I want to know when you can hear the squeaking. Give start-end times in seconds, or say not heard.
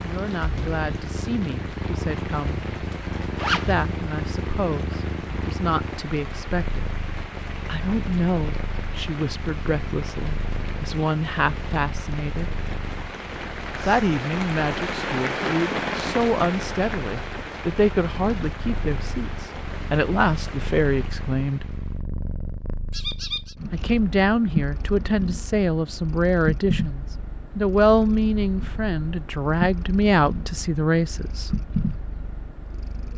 22.9-23.6.